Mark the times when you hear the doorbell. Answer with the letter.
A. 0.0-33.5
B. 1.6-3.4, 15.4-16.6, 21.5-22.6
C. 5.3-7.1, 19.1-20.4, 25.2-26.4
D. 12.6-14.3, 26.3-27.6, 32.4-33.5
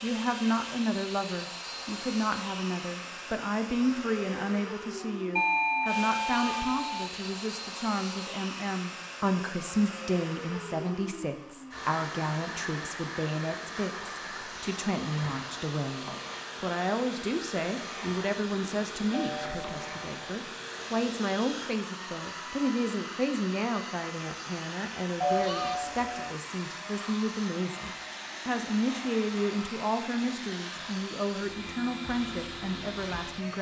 C.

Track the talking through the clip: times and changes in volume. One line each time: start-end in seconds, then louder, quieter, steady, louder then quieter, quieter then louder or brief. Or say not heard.
0.0-33.5 steady.